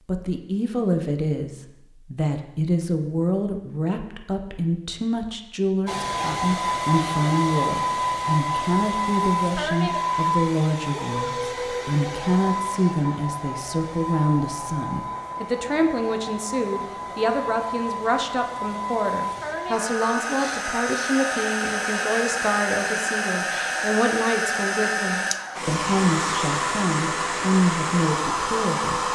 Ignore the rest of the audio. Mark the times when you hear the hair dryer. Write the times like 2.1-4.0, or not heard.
5.8-29.0.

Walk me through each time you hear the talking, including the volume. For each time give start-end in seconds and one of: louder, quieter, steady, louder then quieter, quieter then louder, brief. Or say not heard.
0.1-29.0 steady.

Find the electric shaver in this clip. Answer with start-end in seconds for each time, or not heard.
not heard.